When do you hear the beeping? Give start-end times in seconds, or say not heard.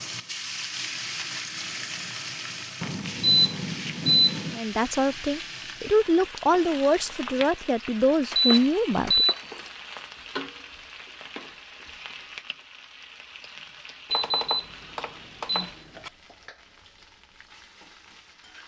2.8-4.6, 8.3-9.4, 14.1-16.1.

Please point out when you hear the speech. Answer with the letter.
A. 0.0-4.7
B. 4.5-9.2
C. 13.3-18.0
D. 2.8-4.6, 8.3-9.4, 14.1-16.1
B.